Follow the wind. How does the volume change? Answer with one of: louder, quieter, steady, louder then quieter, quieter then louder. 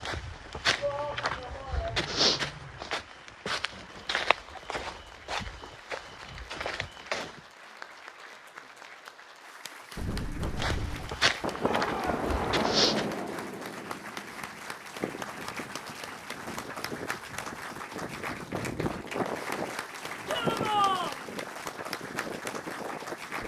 quieter then louder.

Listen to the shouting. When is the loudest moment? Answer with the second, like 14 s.
21 s.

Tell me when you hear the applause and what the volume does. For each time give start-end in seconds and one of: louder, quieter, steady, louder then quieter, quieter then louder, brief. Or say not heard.
0.1-23.4 louder.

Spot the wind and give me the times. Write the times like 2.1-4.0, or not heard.
9.9-23.4.